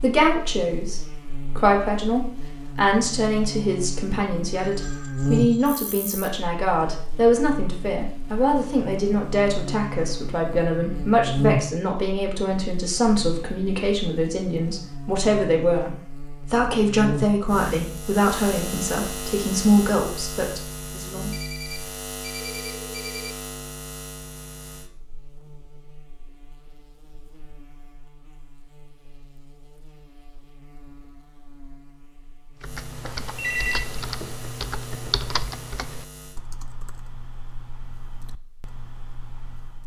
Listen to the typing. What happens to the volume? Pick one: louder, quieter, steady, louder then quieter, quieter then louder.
quieter.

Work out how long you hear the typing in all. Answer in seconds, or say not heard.
7 s.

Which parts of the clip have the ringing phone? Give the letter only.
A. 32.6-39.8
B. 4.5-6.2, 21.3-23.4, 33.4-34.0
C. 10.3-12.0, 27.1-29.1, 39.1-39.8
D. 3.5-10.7
B.